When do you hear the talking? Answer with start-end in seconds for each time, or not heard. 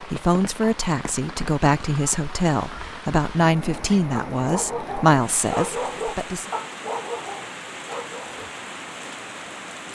0.0-6.5.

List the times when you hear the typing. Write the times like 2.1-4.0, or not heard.
not heard.